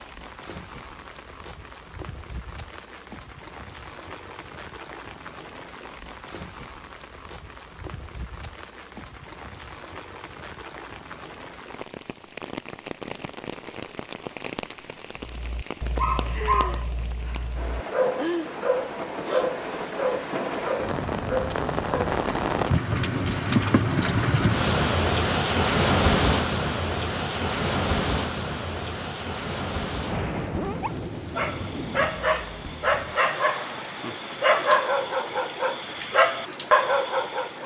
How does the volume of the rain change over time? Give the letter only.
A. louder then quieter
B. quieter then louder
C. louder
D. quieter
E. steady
A.